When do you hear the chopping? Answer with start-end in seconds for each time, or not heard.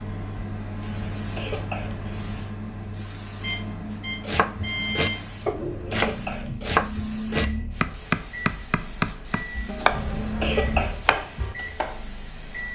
4.2-12.0.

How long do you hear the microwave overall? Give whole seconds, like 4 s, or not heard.
13 s.